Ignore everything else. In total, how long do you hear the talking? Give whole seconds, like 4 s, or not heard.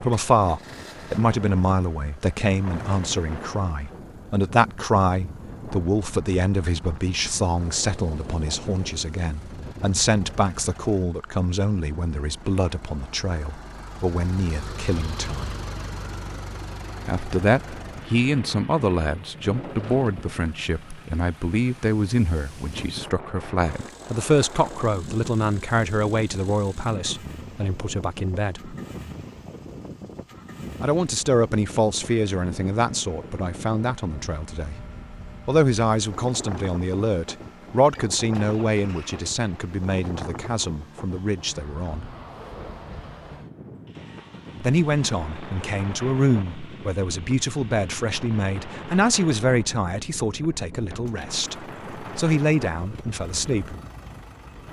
47 s.